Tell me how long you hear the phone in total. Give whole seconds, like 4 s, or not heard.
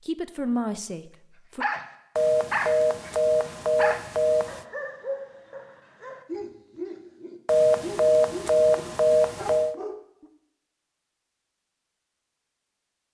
5 s.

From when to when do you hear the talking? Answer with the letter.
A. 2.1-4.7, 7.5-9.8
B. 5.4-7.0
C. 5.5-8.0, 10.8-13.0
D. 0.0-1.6
D.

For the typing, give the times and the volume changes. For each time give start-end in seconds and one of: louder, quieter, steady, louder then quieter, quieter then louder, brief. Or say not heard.
not heard.